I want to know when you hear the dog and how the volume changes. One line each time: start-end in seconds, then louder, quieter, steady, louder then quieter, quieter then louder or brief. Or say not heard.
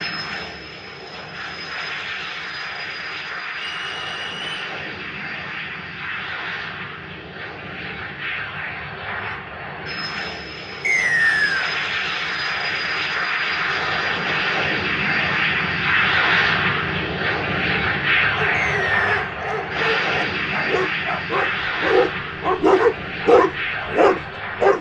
18.4-24.7 louder.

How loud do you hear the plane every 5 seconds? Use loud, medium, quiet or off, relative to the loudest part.
medium, medium, loud, loud, medium.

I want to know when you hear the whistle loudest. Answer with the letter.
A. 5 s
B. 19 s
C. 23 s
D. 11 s
D.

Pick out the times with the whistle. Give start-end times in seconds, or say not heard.
3.5-4.8, 10.8-11.7, 18.5-19.4.